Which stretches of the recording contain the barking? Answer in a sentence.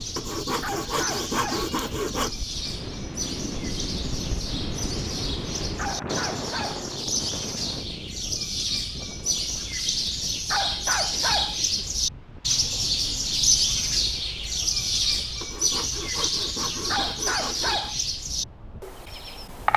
You can hear the barking from 0.6 to 1.7 s, from 5.8 to 6.8 s, from 10.5 to 11.6 s and from 16.9 to 18.0 s.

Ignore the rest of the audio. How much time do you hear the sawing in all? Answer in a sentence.
The sawing can be heard for 5 seconds in total.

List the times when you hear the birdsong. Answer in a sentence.
The birdsong can be heard from 0.0 to 19.7 s.